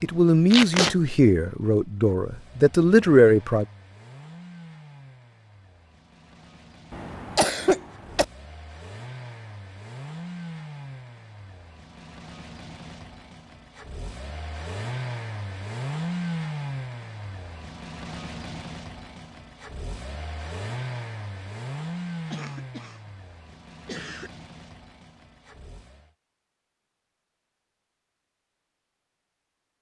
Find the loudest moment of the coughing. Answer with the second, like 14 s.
8 s.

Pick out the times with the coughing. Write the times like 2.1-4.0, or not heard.
6.9-8.2, 22.3-23.1, 23.9-24.3.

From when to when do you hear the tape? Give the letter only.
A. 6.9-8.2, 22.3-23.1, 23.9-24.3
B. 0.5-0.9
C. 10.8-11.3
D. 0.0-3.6
B.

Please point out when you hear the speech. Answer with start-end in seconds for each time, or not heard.
0.0-3.6.